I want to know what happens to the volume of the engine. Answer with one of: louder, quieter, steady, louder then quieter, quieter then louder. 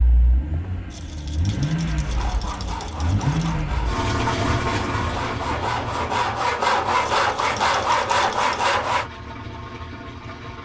quieter.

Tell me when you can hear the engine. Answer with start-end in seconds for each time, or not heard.
0.0-10.6.